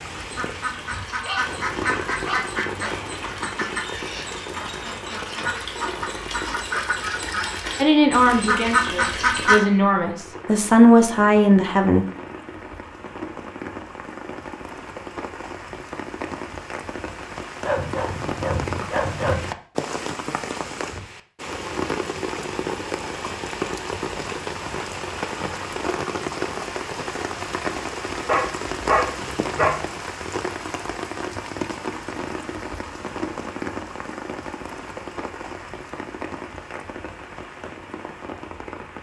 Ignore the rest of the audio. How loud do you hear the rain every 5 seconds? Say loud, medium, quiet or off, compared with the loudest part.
medium, medium, medium, loud, loud, loud, loud, medium.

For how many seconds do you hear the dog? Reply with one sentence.
You can hear the dog for 6 seconds altogether.